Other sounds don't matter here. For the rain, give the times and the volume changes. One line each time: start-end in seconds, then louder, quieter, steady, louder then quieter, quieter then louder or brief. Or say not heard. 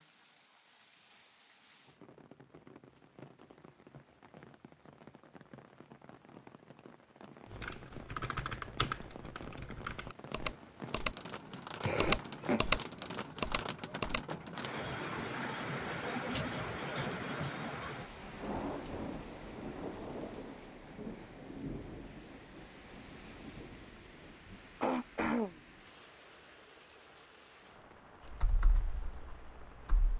0.0-30.1 louder then quieter.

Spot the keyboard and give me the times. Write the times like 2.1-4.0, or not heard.
7.5-11.2, 12.0-12.8, 13.4-14.2, 28.3-30.1.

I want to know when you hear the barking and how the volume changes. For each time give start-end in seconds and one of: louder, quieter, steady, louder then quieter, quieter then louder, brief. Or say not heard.
not heard.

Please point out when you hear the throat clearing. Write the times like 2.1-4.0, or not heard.
11.8-12.7, 24.8-25.6.